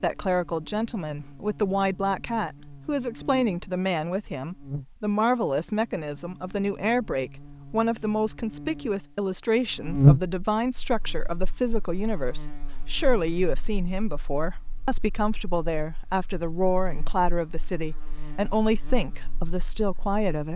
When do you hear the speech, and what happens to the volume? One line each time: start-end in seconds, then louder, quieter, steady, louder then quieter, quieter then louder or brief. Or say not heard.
0.0-20.5 steady.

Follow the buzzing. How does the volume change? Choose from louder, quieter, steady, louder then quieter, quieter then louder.
louder then quieter.